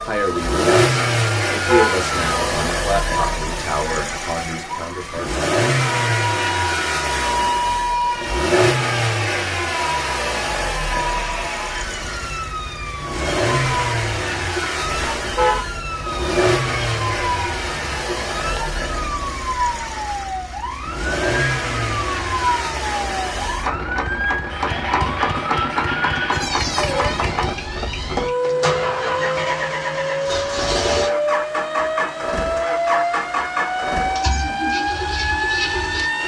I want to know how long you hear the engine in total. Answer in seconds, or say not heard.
36 s.